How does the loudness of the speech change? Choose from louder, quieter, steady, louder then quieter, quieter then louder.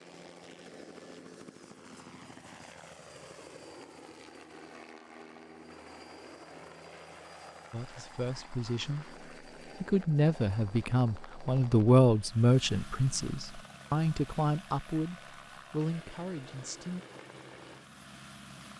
louder then quieter.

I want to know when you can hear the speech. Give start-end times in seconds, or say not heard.
7.7-17.1.